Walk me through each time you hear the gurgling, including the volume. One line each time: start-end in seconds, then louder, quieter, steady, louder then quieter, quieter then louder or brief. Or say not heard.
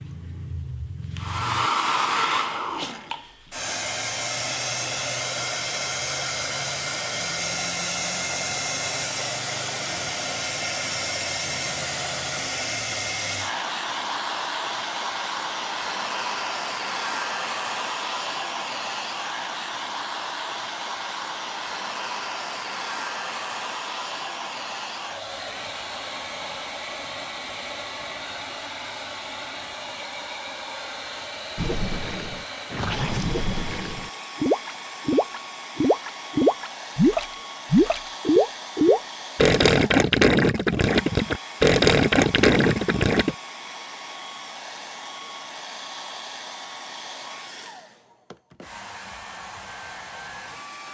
31.6-43.4 louder.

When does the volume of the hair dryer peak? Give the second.
2 s.